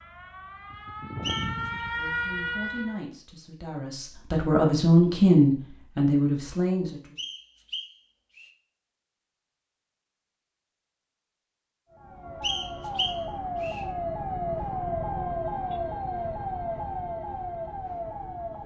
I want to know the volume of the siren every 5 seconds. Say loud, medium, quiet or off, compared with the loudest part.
loud, off, loud, loud.